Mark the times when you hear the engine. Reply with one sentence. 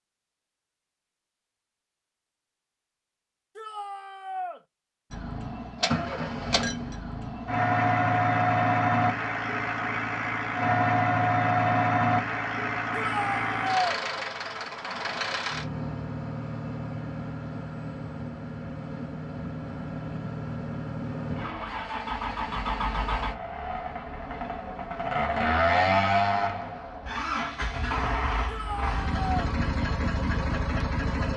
You can hear the engine from 5.1 to 31.3 s.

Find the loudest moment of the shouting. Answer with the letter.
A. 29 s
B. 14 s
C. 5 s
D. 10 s
B.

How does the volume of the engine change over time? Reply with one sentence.
The volume of the engine goes down, then up.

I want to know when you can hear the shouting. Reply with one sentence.
The shouting can be heard from 3.5 to 4.6 s, from 12.9 to 14.0 s and from 28.4 to 29.2 s.